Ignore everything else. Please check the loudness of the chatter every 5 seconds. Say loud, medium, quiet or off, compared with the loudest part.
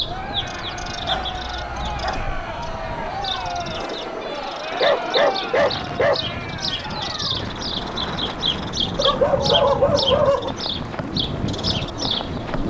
loud, loud, medium.